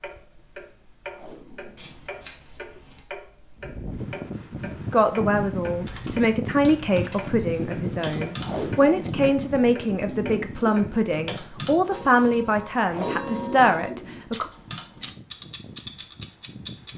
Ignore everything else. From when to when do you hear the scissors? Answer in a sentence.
The scissors can be heard from 1.8 to 3.0 s.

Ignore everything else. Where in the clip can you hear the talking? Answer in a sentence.
You can hear the talking from 4.8 to 14.4 s.